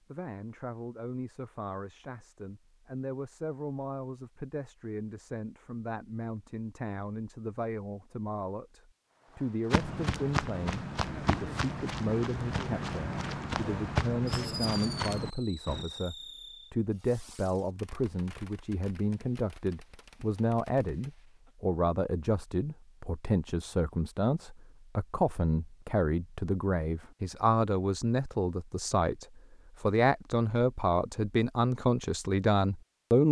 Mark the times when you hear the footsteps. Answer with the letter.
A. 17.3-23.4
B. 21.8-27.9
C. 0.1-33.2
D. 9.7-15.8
D.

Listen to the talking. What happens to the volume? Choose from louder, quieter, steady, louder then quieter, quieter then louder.
louder.